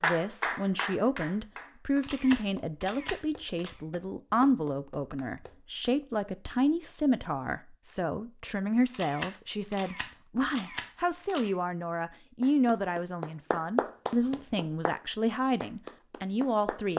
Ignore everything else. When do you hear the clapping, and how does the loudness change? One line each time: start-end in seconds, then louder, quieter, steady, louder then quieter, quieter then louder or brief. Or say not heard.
0.0-5.7 quieter then louder
12.4-14.9 brief
15.6-16.9 brief.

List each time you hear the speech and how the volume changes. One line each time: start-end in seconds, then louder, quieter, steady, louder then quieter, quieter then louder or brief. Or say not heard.
0.0-16.9 steady.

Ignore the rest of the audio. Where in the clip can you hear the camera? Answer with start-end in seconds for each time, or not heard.
2.0-3.8, 8.9-11.6.